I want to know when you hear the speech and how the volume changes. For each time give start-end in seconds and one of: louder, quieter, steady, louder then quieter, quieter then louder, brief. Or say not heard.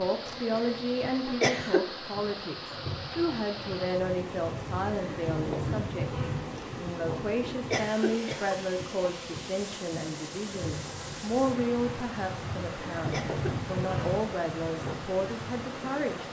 0.0-16.2 steady.